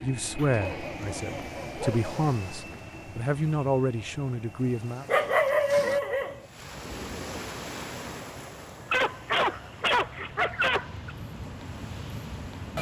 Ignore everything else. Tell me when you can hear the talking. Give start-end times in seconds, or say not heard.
0.0-5.0.